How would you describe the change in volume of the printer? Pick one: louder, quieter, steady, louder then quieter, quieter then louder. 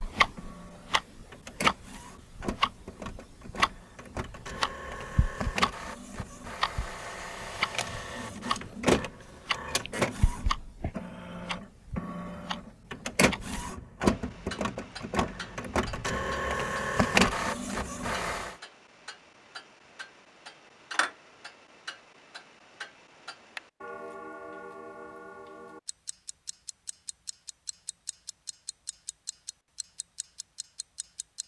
louder.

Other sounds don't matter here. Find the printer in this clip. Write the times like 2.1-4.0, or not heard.
0.0-18.6.